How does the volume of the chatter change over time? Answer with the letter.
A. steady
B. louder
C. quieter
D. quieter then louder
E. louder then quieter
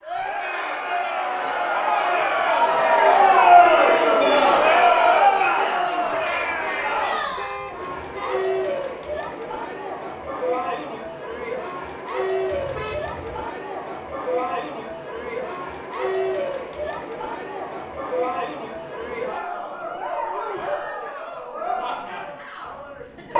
C.